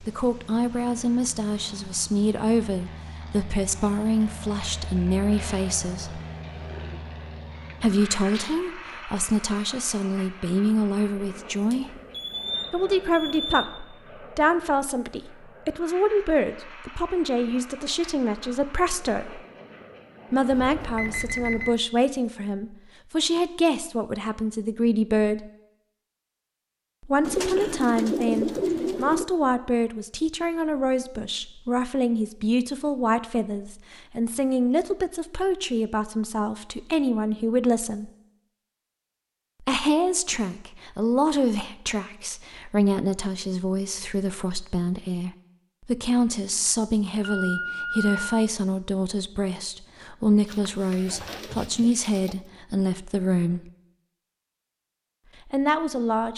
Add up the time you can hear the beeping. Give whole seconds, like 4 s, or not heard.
4 s.